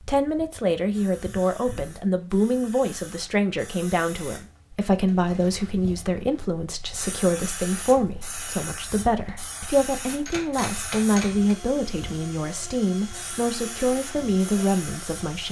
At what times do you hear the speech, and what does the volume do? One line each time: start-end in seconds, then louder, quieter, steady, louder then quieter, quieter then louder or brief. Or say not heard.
0.1-15.4 steady.